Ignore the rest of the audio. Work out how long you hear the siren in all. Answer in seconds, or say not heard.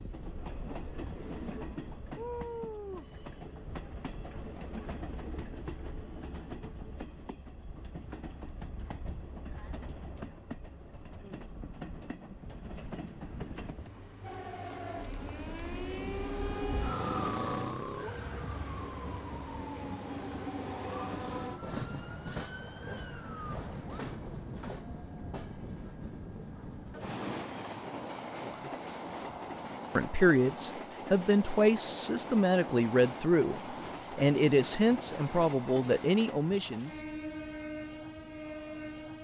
10 s.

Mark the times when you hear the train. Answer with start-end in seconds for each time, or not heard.
0.0-39.1.